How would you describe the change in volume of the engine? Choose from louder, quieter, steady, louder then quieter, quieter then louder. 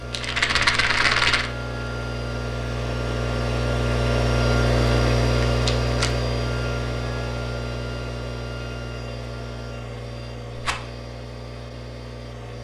louder then quieter.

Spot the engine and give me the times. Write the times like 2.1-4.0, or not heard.
0.0-12.5.